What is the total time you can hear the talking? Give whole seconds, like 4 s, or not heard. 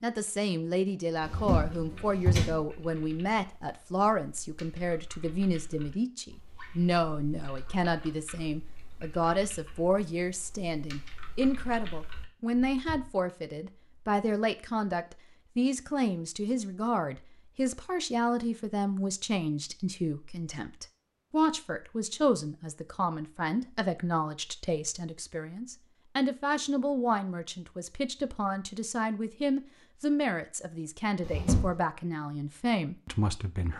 34 s.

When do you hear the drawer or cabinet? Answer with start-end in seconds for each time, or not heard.
1.2-2.6, 31.2-31.8.